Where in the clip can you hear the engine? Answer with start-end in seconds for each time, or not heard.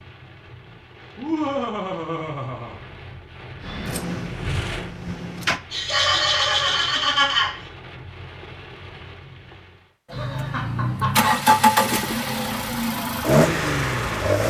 3.6-5.6, 10.1-14.4.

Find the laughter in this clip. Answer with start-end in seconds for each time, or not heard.
1.1-2.8, 5.7-7.5, 10.1-11.5.